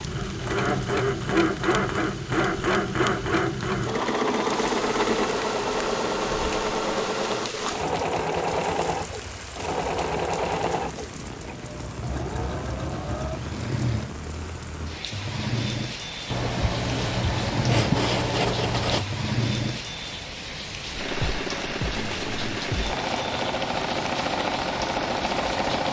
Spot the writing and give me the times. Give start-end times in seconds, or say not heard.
16.3-19.1.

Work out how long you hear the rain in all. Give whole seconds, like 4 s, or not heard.
26 s.